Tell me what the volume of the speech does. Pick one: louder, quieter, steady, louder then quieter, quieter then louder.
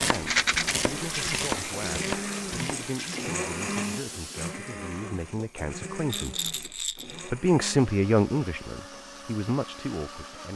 louder then quieter.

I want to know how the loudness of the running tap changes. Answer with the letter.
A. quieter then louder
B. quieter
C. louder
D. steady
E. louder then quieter
B.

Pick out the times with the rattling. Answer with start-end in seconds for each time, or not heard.
0.1-0.8, 6.1-7.2.